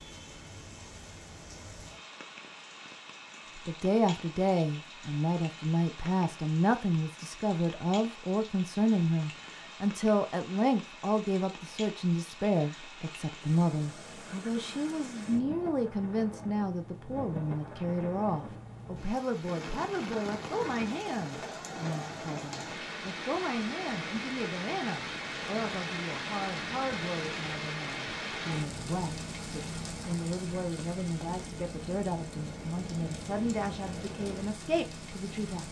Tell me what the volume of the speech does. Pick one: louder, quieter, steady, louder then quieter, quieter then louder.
quieter.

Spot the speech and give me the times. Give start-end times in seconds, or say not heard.
3.5-35.6.